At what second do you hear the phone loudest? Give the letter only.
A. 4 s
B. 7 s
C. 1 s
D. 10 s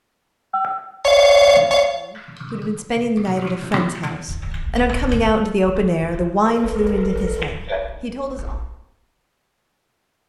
C.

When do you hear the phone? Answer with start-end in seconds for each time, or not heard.
0.5-1.9, 6.5-7.8.